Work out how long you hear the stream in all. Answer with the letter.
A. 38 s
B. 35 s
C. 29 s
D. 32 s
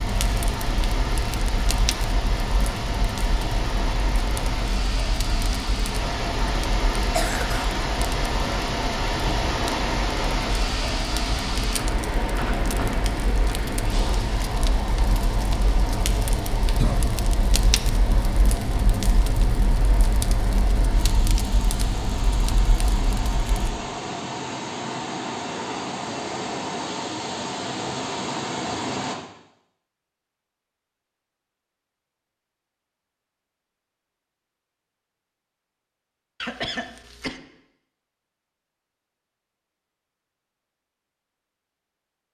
C.